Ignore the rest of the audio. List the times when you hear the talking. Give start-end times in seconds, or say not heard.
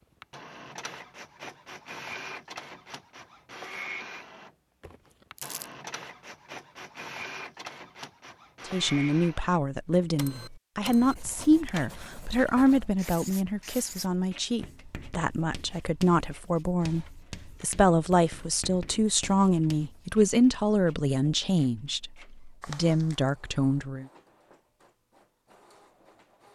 8.7-24.1.